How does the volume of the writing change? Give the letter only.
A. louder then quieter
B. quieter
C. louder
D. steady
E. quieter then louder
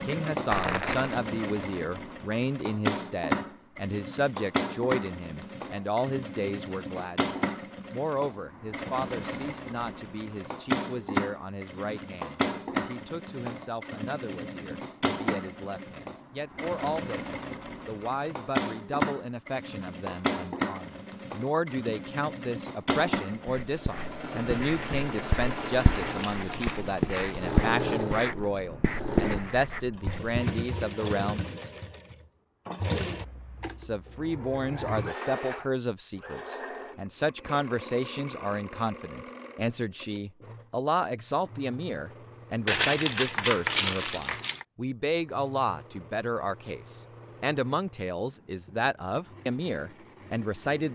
C.